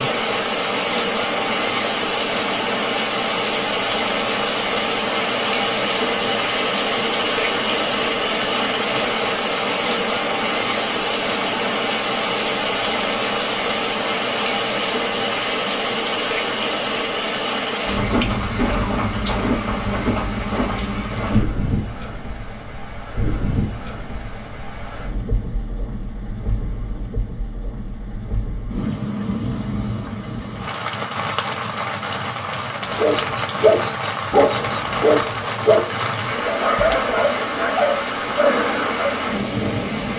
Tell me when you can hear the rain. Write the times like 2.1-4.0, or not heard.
0.0-40.1.